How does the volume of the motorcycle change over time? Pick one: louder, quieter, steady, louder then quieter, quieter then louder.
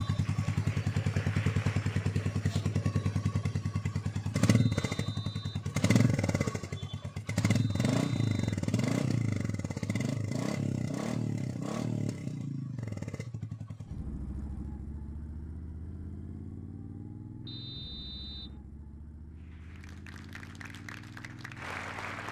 quieter.